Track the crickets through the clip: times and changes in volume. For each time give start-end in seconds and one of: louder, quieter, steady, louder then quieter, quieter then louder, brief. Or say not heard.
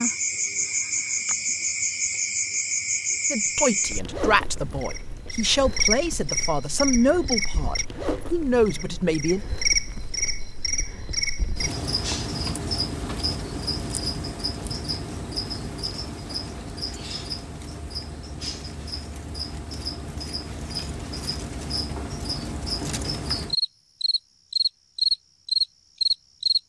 0.0-26.6 quieter then louder.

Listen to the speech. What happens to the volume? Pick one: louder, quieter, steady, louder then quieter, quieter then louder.
steady.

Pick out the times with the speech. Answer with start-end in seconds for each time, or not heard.
3.3-9.4.